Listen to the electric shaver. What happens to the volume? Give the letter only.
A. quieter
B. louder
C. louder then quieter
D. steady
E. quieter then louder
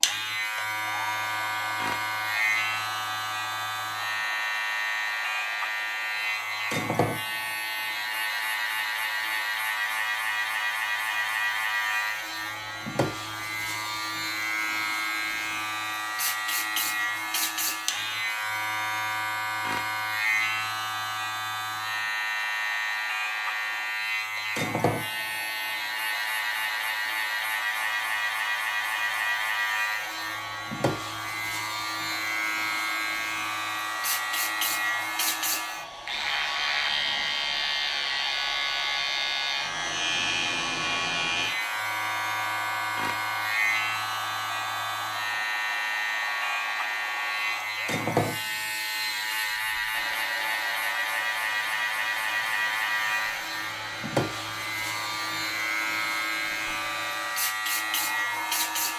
D.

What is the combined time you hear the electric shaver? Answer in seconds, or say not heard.
59 s.